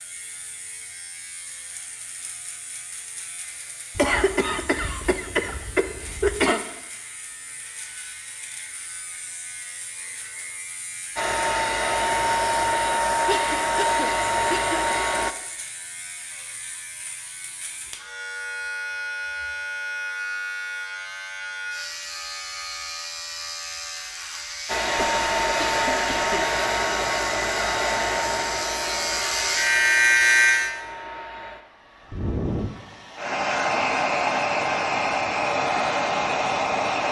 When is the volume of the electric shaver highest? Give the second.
30 s.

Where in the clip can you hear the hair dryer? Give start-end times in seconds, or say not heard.
11.2-15.3, 24.6-37.0.